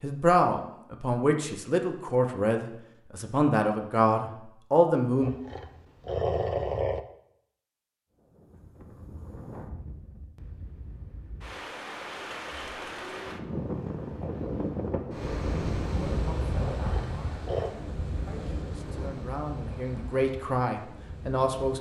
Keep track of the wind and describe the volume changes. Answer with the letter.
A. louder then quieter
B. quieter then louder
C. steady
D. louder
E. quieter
A.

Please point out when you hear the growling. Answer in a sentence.
The growling can be heard from 5.2 to 7.0 s and from 16.8 to 17.7 s.